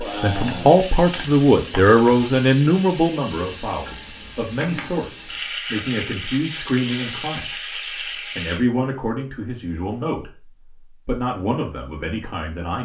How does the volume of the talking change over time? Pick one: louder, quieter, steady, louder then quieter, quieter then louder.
quieter.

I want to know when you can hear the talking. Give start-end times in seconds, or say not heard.
0.0-7.5, 8.3-12.8.